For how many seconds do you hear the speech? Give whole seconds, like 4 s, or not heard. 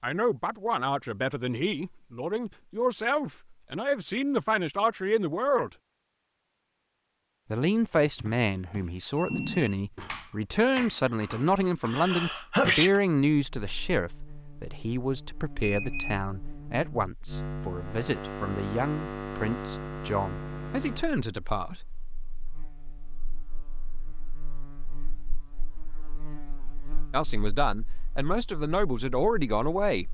23 s.